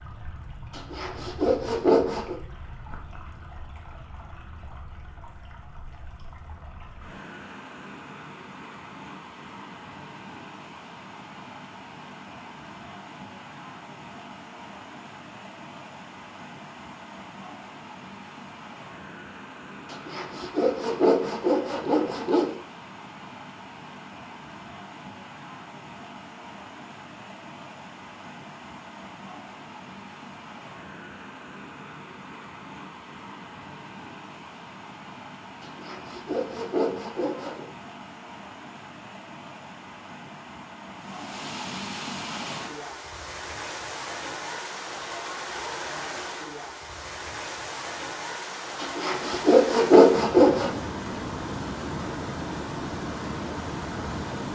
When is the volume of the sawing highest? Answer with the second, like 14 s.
50 s.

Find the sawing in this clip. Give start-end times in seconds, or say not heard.
0.7-2.4, 19.9-22.5, 35.6-37.6, 48.8-50.7.